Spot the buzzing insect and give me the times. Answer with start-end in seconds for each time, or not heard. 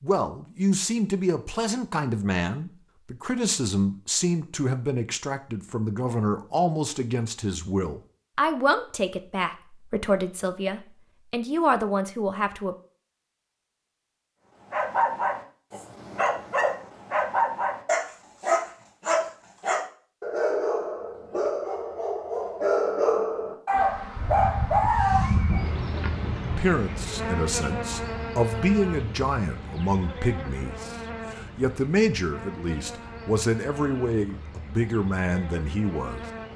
23.7-36.5.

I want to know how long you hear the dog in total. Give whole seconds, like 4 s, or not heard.
11 s.